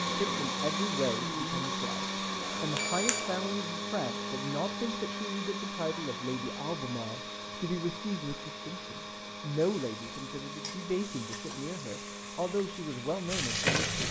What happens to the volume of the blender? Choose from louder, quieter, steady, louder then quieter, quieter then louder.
quieter.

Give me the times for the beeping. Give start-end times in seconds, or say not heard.
2.4-3.5.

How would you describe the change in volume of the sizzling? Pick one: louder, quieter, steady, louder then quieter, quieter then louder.
louder.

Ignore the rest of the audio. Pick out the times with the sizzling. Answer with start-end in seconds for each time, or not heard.
9.6-14.0.